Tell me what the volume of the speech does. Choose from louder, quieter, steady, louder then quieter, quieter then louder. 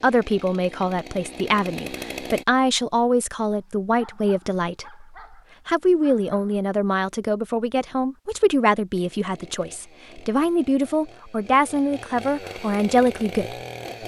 steady.